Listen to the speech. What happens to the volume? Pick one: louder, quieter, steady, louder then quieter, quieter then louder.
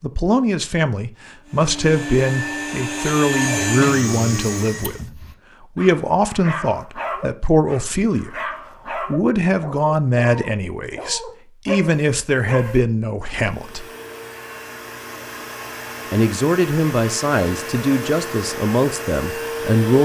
steady.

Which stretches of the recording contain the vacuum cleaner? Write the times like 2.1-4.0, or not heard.
1.4-5.0, 13.3-20.0.